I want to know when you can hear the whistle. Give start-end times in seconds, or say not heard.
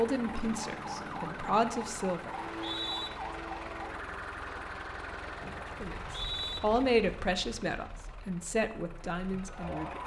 2.5-3.1, 5.8-6.6.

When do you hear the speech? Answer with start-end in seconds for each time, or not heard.
0.0-2.4, 5.8-10.0.